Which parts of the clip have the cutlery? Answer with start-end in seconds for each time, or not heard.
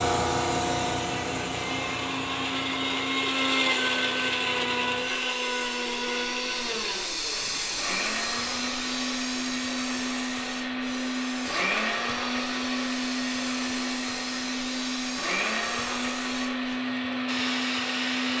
not heard.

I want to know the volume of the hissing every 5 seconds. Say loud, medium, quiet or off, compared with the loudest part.
loud, loud, medium, loud.